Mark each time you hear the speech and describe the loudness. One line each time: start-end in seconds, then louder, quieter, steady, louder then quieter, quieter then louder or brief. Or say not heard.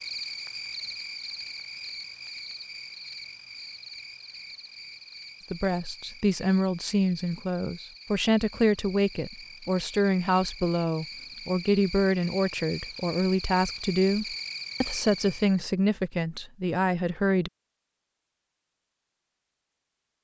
5.5-17.5 steady.